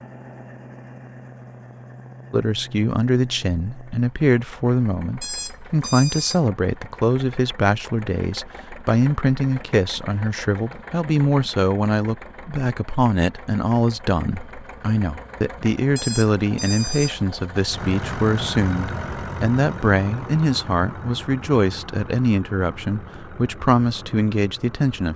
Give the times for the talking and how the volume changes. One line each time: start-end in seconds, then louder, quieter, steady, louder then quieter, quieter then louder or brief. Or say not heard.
2.3-25.1 steady.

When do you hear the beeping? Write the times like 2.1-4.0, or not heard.
5.2-6.4, 15.9-17.1.